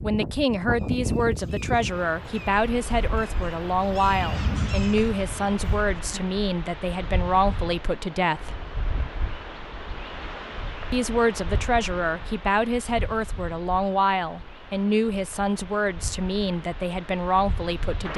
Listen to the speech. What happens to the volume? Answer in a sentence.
The loudness of the speech stays about the same.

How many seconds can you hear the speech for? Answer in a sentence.
The speech can be heard for 16 seconds in total.